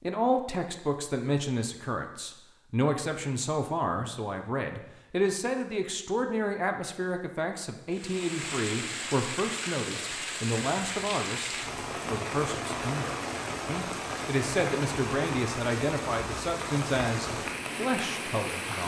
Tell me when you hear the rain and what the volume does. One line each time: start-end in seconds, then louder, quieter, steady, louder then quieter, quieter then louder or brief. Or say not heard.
7.9-18.8 steady.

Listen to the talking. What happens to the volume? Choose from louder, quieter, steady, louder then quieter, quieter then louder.
steady.